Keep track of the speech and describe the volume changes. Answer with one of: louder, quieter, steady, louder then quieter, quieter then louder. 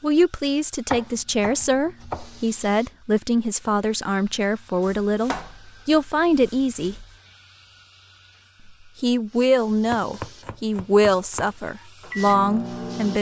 steady.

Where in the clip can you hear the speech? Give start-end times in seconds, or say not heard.
0.0-7.0, 9.0-13.1.